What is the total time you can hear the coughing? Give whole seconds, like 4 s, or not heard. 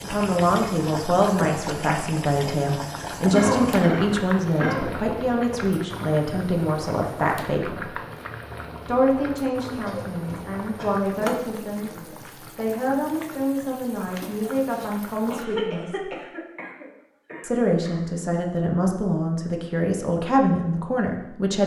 6 s.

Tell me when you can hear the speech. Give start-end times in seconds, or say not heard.
0.0-8.0, 8.8-16.1, 17.4-21.6.